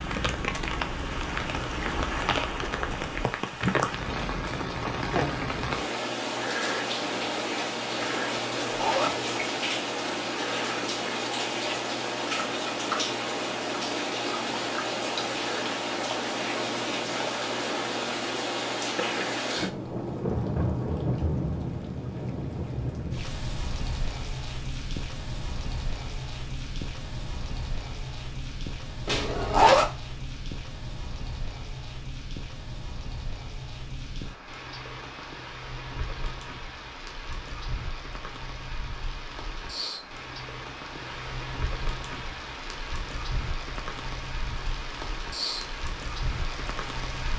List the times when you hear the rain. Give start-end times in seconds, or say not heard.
0.0-47.3.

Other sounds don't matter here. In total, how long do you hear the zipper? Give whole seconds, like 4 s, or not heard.
2 s.